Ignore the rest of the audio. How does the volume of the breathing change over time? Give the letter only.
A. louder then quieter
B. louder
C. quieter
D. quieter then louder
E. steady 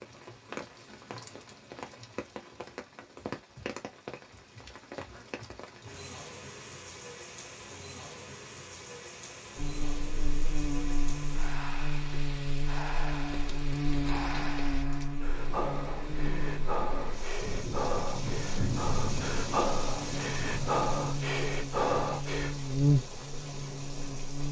B.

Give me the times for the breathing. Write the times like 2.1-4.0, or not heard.
11.3-22.6.